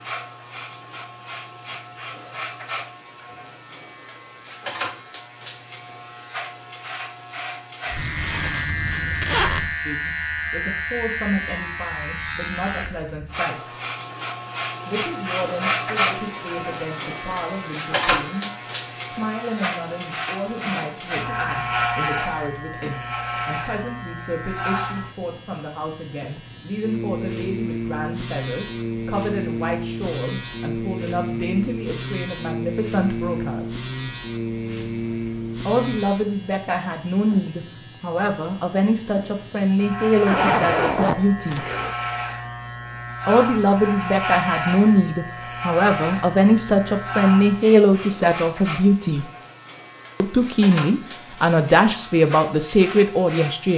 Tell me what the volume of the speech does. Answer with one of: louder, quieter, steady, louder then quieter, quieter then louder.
louder.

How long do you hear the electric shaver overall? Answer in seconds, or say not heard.
54 s.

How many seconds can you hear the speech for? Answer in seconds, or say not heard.
38 s.